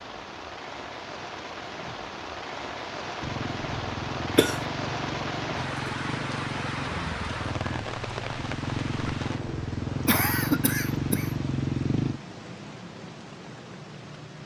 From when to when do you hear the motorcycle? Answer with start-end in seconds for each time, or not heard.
3.1-12.2.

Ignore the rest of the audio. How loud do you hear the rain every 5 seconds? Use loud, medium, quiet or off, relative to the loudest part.
loud, loud, medium.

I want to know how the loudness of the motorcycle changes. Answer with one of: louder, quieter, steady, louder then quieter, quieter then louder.
louder.